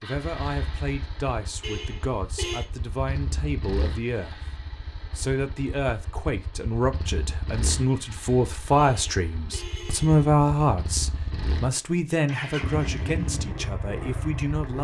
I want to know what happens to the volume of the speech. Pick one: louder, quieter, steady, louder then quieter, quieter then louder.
louder then quieter.